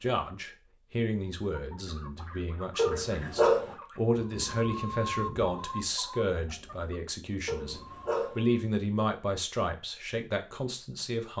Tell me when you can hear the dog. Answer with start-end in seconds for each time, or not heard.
2.8-3.8, 7.5-8.4.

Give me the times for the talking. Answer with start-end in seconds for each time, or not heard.
0.0-11.3.